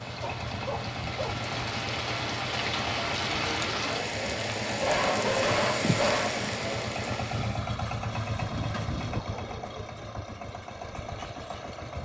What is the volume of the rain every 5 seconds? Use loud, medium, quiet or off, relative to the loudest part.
loud, loud, off.